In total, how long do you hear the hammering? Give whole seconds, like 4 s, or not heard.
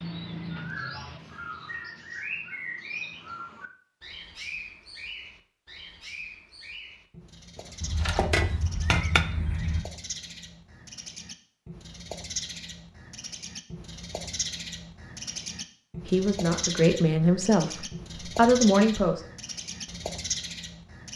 2 s.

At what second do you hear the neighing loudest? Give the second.
9 s.